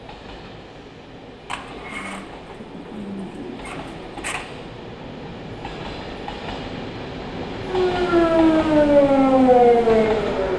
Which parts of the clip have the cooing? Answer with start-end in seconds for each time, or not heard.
1.4-4.5.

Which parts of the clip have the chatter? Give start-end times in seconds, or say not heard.
not heard.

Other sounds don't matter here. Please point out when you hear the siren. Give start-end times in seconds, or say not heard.
7.6-10.5.